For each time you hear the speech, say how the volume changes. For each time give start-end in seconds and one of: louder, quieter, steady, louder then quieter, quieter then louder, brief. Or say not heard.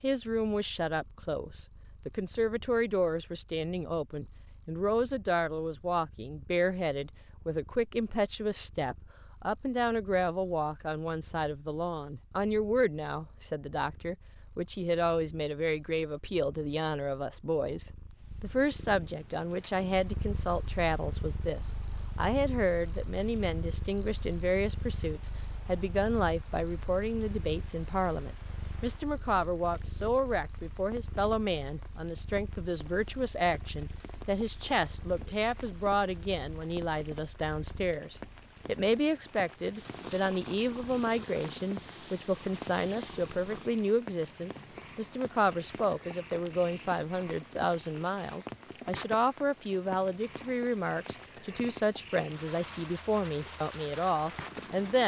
0.0-55.0 steady.